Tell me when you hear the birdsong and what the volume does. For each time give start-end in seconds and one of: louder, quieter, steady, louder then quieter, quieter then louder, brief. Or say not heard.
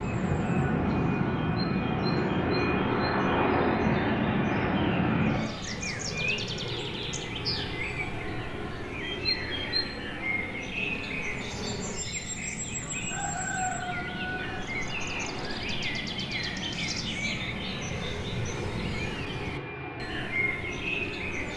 0.0-21.5 louder.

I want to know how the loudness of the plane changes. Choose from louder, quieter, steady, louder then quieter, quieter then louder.
quieter.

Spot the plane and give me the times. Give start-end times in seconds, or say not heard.
0.0-21.5.